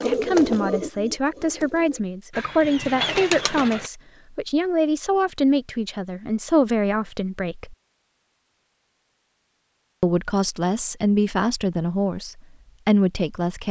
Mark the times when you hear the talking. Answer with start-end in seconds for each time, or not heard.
0.0-7.8, 10.0-13.6.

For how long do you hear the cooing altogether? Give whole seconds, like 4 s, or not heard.
4 s.